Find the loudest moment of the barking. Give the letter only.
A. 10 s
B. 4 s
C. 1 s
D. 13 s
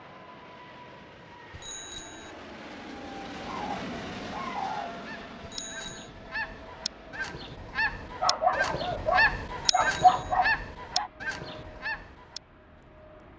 A.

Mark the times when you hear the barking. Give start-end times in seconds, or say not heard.
3.4-5.0, 8.2-11.1.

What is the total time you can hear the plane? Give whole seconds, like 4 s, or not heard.
13 s.